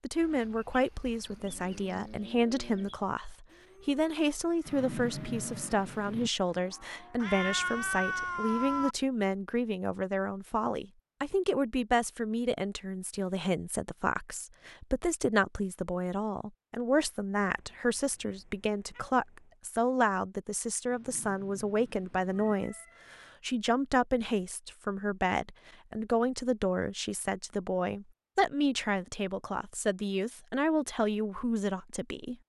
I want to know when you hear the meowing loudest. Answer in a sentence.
The volume of the meowing peaks at 8 seconds.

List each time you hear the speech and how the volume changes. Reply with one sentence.
The speech can be heard from 0.0 to 32.4 s, at a steady volume.